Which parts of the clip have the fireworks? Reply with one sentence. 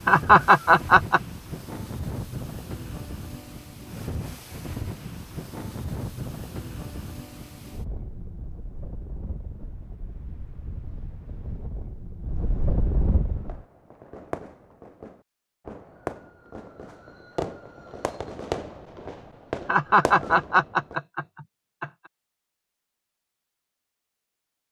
You can hear the fireworks from 13.3 to 21.0 s.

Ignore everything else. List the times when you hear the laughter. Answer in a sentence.
You can hear the laughter from 0.1 to 1.2 s and from 19.6 to 21.9 s.